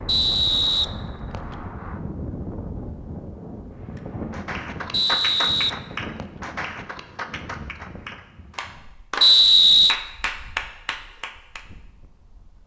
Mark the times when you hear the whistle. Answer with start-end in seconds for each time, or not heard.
0.1-1.6, 4.9-6.2, 9.2-9.9.